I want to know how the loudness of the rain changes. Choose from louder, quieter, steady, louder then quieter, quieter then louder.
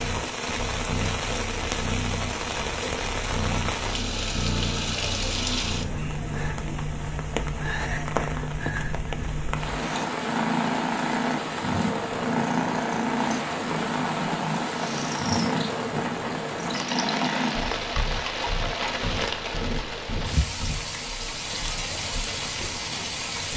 steady.